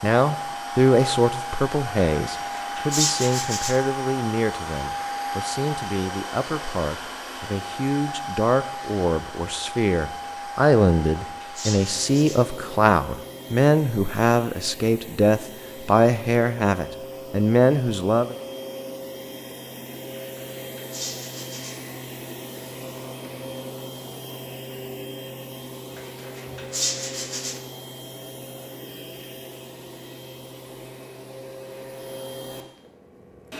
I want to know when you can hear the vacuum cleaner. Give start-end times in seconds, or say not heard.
0.0-33.5.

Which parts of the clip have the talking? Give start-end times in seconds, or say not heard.
0.0-18.4.